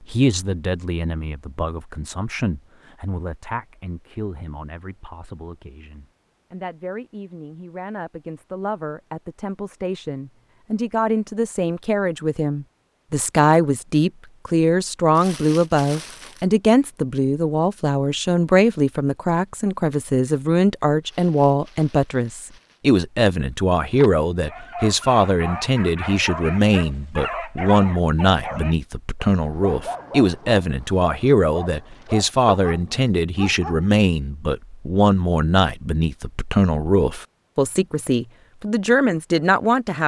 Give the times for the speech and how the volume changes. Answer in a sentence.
The speech can be heard from 0.0 to 40.0 s, getting louder.